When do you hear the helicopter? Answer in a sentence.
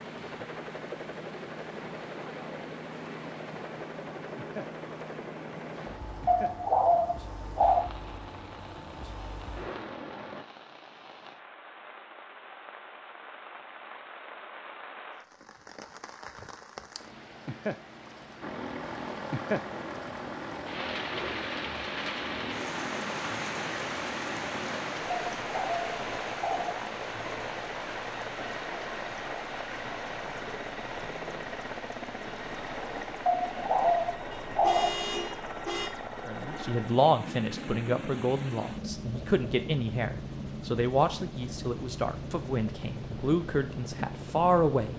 You can hear the helicopter from 0.0 to 10.4 s and from 18.4 to 44.9 s.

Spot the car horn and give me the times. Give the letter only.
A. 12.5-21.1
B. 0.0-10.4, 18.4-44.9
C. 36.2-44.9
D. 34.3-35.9
D.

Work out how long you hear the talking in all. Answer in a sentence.
You can hear the talking for 9 seconds altogether.